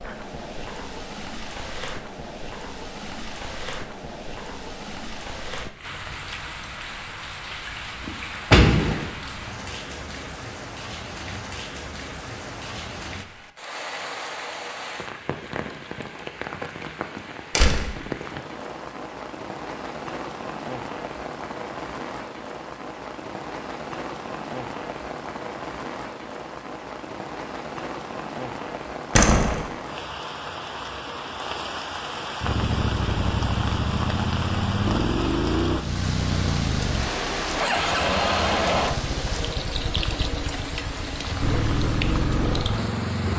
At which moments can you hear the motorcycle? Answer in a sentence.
The motorcycle can be heard from 32.4 to 43.3 s.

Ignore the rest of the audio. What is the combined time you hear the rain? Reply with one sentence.
You can hear the rain for 43 seconds altogether.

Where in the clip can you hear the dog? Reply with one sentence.
You can't hear the dog here.